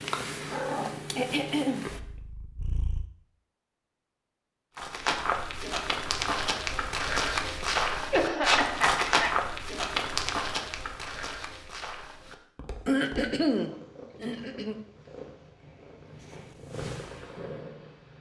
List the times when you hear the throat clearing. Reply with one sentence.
You can hear the throat clearing from 1.1 to 1.9 s, from 8.1 to 9.6 s and from 12.8 to 14.8 s.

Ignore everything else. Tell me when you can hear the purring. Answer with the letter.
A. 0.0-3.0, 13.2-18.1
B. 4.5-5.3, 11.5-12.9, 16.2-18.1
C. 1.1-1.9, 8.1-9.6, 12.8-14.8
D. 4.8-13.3
A.